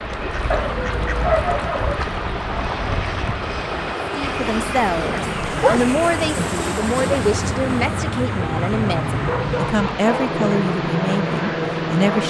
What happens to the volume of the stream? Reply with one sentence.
The loudness of the stream stays about the same.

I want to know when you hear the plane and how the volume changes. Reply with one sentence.
The plane can be heard from 0.0 to 12.2 s, getting louder.